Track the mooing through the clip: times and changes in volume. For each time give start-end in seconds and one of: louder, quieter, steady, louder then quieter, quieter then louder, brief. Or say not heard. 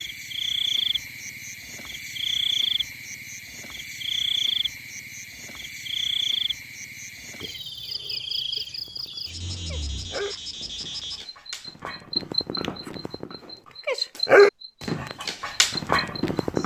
not heard.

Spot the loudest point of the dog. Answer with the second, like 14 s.
14 s.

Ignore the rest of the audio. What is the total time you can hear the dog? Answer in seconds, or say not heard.
8 s.